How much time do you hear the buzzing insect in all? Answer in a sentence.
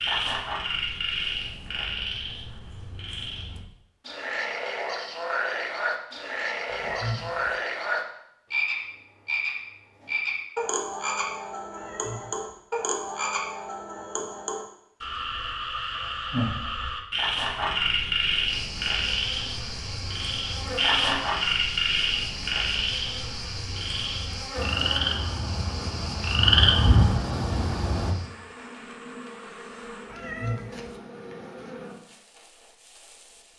You can hear the buzzing insect for 15 seconds altogether.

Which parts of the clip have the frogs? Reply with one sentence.
The frogs can be heard from 0.0 to 28.1 s.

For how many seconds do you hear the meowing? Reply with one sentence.
You can hear the meowing for 3 seconds altogether.